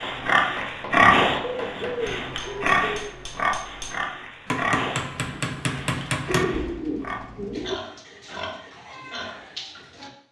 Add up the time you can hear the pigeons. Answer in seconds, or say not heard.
3 s.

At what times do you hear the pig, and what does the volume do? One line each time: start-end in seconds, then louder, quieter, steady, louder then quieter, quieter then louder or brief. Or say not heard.
0.0-10.1 quieter.